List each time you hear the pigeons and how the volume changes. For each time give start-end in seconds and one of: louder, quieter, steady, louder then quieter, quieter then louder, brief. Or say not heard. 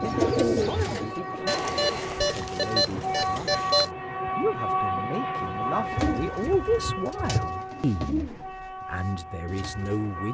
0.0-2.0 brief
5.4-10.2 quieter.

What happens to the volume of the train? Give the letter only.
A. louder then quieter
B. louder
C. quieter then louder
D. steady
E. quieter
A.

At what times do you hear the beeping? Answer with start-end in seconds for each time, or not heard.
1.4-3.9.